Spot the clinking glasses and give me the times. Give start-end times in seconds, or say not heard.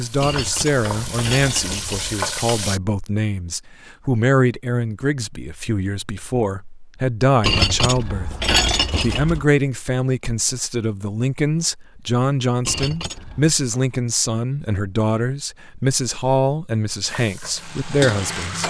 0.2-2.2, 7.4-9.4, 12.7-13.6.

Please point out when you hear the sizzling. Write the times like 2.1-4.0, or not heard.
0.0-2.8, 17.0-18.6.